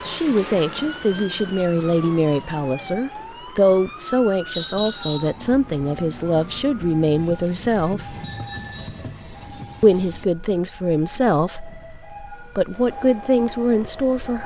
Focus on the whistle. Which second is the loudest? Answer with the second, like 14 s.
5 s.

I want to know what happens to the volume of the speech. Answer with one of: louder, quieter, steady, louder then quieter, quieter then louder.
steady.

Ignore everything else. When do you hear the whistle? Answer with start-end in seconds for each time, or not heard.
4.5-5.3, 8.2-9.1.